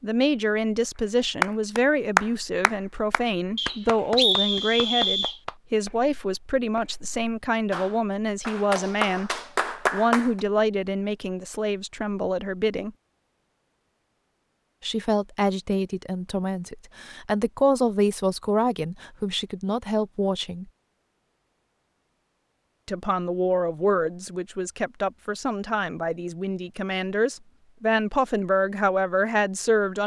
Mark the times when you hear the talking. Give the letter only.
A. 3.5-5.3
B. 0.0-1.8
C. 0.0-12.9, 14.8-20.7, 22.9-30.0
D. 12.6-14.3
C.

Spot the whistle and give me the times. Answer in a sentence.
The whistle can be heard from 3.5 to 5.3 s.